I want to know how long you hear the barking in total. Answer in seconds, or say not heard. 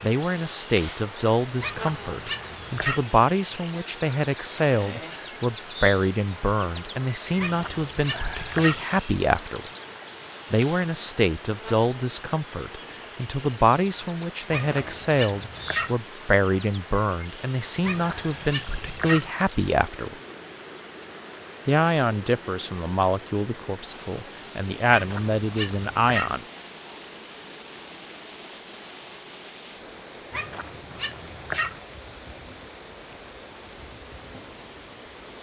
9 s.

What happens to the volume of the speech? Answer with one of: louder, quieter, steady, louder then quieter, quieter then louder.
steady.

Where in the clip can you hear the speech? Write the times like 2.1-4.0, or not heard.
0.0-9.7, 10.5-20.1, 21.6-26.4.